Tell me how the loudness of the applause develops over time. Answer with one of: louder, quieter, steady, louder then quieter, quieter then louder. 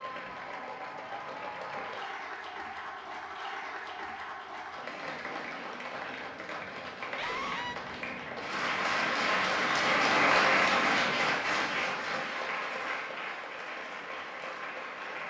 louder then quieter.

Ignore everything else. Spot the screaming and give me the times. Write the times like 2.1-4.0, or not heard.
7.2-7.8.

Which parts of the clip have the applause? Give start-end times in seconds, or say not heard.
0.0-15.2.